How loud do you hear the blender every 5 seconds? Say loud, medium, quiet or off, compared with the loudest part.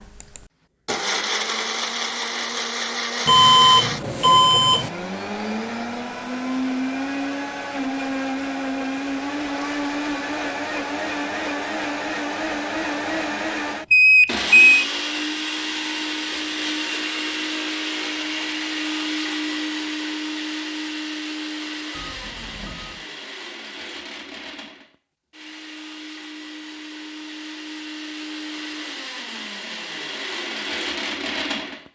loud, loud, loud, loud, medium, medium, loud.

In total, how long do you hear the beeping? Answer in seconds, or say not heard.
4 s.